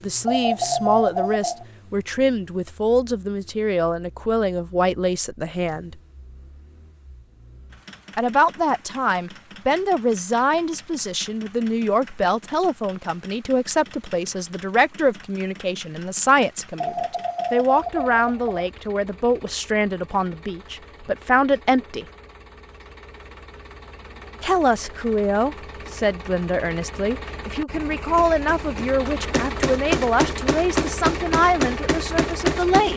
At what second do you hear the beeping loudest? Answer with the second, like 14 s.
1 s.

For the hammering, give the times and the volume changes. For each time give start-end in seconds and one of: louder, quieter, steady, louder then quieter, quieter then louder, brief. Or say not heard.
28.1-32.9 louder.